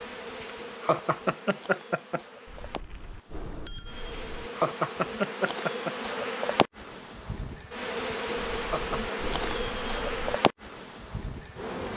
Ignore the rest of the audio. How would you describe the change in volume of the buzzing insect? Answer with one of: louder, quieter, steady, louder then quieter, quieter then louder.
louder.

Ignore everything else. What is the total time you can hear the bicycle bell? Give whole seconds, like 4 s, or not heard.
4 s.